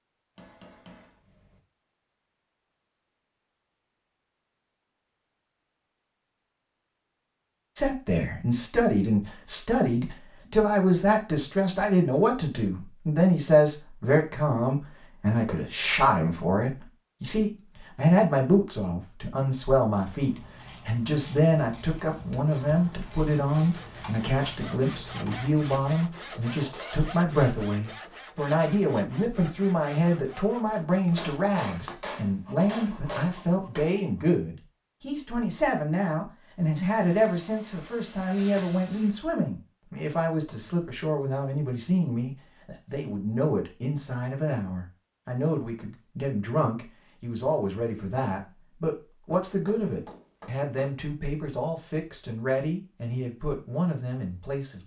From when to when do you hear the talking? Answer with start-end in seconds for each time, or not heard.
7.8-54.8.